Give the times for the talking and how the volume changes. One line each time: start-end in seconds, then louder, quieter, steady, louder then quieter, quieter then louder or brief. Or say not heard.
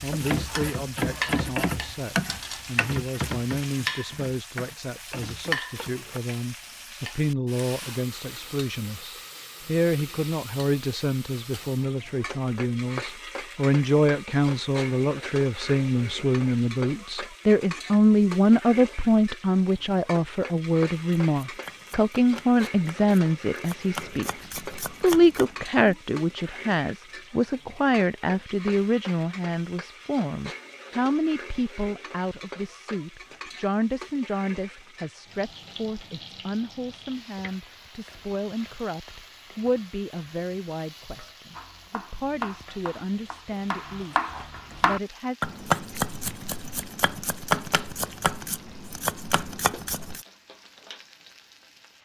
0.0-24.3 louder
25.0-45.4 quieter.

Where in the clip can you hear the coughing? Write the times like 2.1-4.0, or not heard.
not heard.